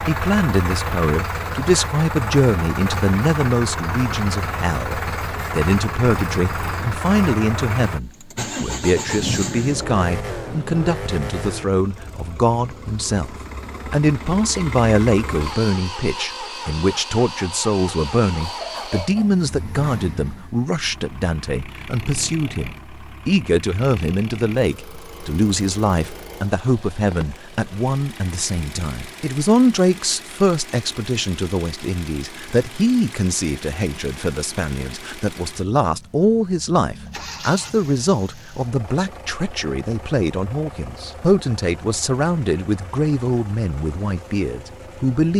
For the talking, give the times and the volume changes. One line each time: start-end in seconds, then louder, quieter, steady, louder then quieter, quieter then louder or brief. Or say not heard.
0.1-45.3 steady.